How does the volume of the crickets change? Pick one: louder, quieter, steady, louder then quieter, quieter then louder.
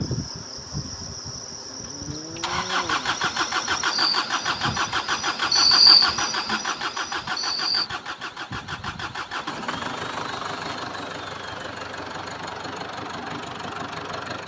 louder then quieter.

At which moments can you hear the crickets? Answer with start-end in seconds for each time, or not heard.
0.0-7.9.